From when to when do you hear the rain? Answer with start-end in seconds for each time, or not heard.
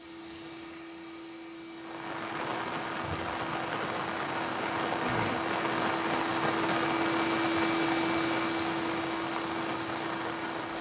1.7-10.7.